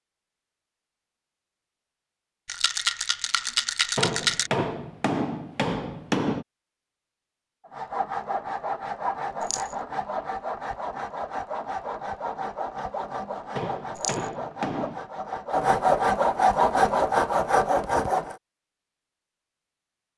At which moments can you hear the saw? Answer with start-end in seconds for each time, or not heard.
7.7-18.4.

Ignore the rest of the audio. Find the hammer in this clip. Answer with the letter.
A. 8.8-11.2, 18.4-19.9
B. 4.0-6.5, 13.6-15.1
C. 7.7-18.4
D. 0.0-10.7
B.